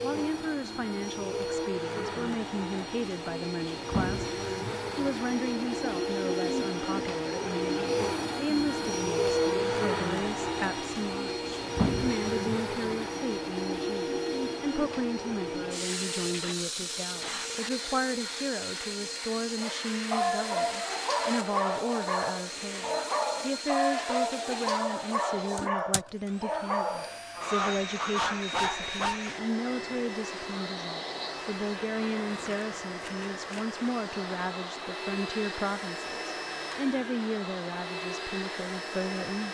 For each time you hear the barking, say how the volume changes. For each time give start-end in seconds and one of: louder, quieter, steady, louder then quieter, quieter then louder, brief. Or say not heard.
19.6-29.2 steady.